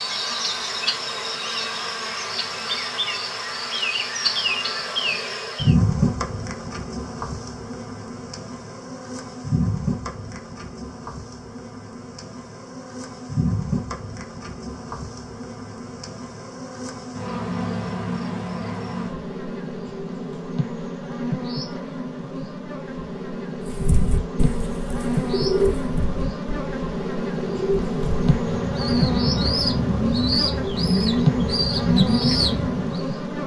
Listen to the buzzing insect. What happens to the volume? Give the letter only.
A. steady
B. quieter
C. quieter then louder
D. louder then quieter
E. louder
C.